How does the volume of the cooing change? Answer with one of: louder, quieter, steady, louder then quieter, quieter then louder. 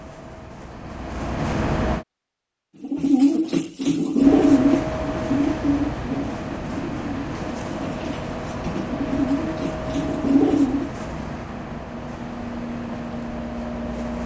quieter then louder.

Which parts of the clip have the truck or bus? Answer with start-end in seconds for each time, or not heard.
0.0-2.0, 4.2-14.2.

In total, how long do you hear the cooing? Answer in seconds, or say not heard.
8 s.